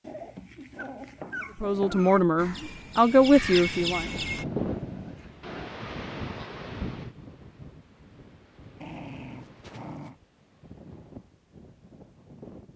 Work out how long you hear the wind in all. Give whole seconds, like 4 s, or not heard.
9 s.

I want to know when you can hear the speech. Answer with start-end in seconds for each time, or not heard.
1.6-4.0.